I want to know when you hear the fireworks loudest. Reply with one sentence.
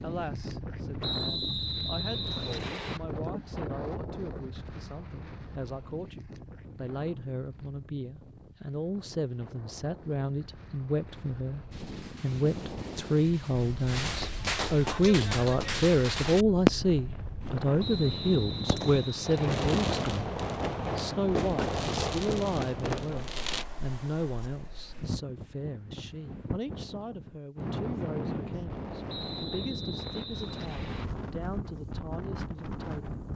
The volume of the fireworks peaks at 17 seconds.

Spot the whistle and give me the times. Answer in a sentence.
You can hear the whistle from 1.0 to 3.0 s, from 17.8 to 19.6 s and from 29.1 to 31.1 s.